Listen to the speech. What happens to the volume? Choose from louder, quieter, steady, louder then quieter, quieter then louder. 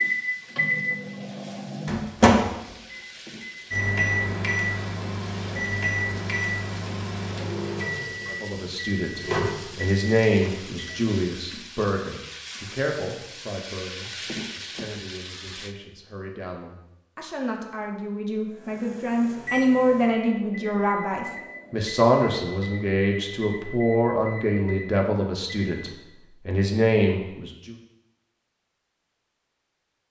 quieter then louder.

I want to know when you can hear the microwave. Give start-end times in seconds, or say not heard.
0.0-11.1, 18.5-25.9.